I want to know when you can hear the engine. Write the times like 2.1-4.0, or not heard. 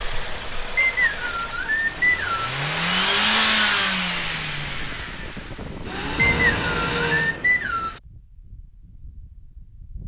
0.0-7.3.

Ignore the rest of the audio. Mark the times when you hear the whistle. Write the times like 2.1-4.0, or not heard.
0.8-2.5, 6.2-8.0.